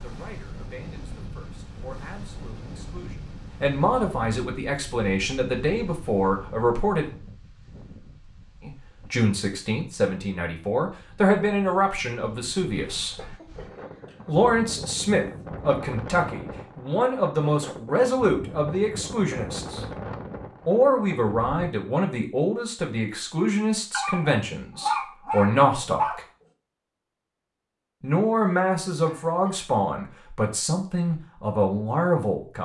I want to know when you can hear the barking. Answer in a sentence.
You can hear the barking from 23.9 to 26.2 s.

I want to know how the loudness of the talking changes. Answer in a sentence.
The loudness of the talking goes up.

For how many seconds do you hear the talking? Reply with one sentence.
You can hear the talking for 27 seconds altogether.